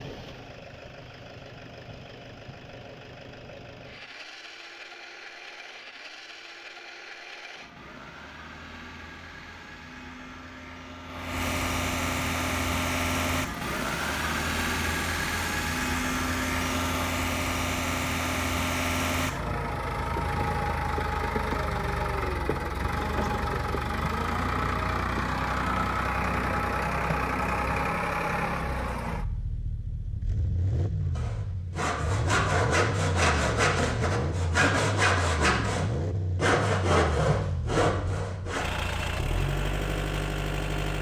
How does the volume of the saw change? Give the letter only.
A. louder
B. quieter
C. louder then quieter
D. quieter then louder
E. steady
E.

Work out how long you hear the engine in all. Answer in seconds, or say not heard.
41 s.